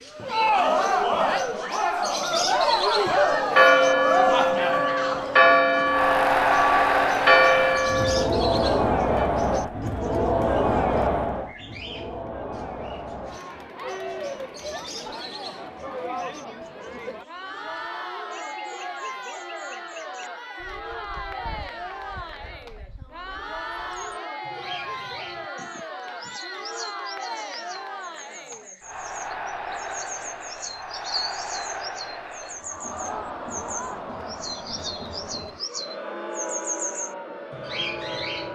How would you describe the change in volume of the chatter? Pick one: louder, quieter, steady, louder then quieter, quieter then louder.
quieter.